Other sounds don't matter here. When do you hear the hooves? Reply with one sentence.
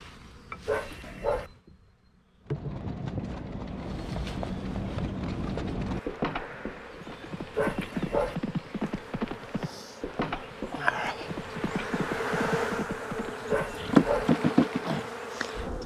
The hooves can be heard from 2.5 to 14.1 s.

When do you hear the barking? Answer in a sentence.
The barking can be heard from 0.7 to 1.5 s, from 7.5 to 8.3 s and from 13.4 to 14.3 s.